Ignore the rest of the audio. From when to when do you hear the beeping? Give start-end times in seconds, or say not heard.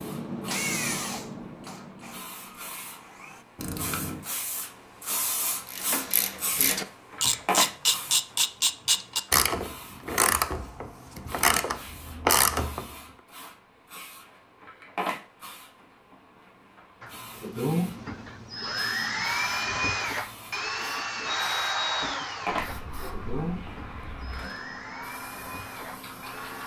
3.5-4.2.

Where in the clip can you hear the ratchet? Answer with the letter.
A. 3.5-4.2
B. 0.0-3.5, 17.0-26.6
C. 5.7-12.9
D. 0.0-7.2
C.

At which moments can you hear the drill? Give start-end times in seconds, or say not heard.
0.0-3.5, 17.0-26.6.